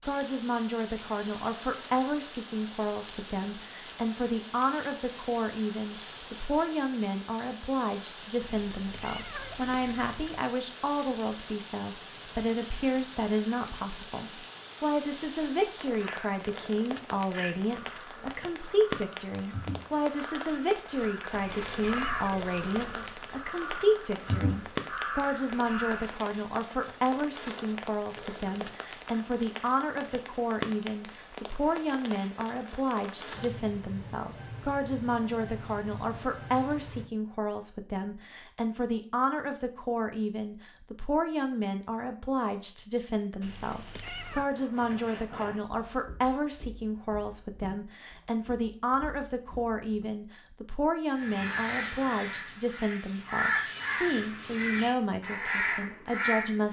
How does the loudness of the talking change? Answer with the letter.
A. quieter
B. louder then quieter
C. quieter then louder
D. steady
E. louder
D.